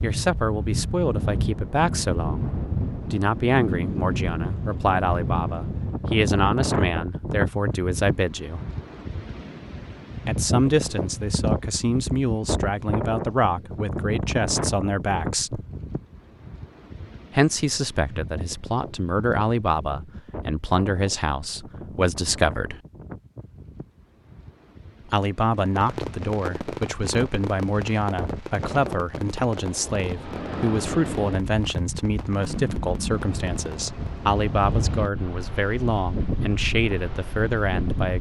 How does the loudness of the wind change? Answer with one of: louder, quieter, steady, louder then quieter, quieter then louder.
quieter then louder.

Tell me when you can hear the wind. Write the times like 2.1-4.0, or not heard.
0.0-38.1.